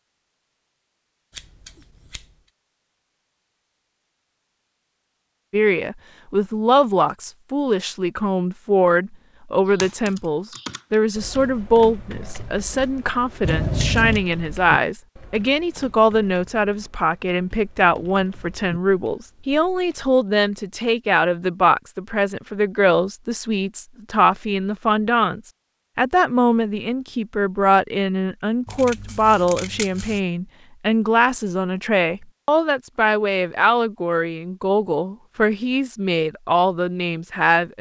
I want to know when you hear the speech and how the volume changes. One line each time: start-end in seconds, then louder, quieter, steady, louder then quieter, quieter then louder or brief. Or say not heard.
5.5-37.7 steady.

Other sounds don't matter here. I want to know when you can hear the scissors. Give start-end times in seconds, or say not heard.
1.3-2.2, 13.4-14.2, 28.6-30.2.